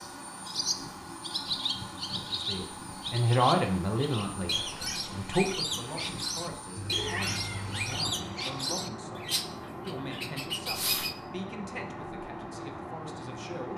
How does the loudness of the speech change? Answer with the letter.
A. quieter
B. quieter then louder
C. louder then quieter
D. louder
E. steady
A.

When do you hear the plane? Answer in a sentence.
You can hear the plane from 0.0 to 13.7 s.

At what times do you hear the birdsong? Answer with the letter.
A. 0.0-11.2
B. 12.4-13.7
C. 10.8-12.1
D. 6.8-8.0
A.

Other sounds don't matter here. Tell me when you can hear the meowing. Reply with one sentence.
The meowing can be heard from 6.8 to 8.0 s.